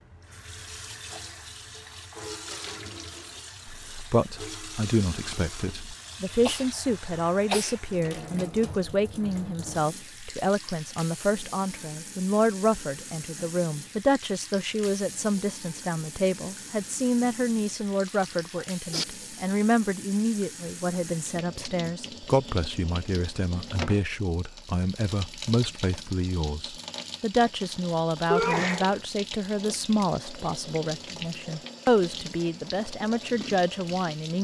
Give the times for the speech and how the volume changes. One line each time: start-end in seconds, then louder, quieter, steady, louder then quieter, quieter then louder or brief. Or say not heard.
3.6-34.4 steady.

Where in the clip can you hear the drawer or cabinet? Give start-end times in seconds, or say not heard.
not heard.